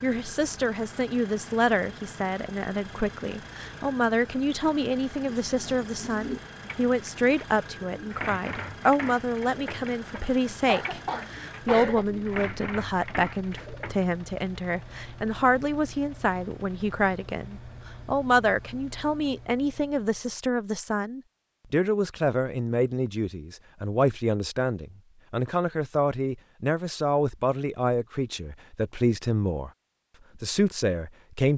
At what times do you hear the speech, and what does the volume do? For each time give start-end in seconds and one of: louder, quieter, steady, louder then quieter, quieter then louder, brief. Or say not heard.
0.0-29.7 steady
30.4-31.5 brief.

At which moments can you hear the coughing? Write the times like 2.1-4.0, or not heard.
10.2-12.1.